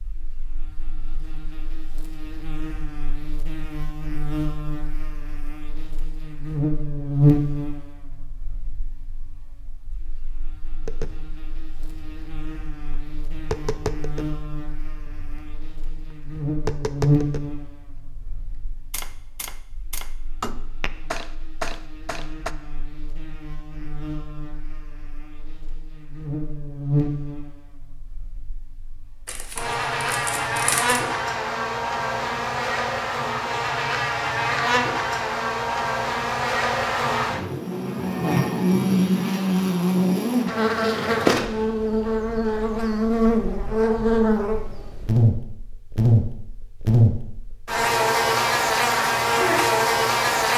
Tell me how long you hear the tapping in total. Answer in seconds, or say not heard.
12 s.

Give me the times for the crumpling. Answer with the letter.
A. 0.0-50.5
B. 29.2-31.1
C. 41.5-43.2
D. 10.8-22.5
B.